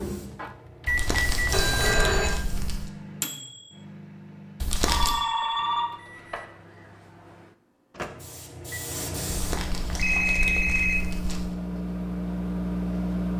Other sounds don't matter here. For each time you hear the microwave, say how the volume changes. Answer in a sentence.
You can hear the microwave from 0.0 to 13.3 s, getting quieter then louder.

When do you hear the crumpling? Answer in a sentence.
You can hear the crumpling from 0.8 to 2.9 s, from 4.6 to 5.2 s and from 9.3 to 11.6 s.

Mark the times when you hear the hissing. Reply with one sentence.
The hissing can be heard from 0.0 to 1.9 s and from 8.0 to 9.6 s.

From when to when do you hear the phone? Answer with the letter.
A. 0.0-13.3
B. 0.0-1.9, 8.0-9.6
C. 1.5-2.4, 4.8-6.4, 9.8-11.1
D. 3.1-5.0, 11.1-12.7
C.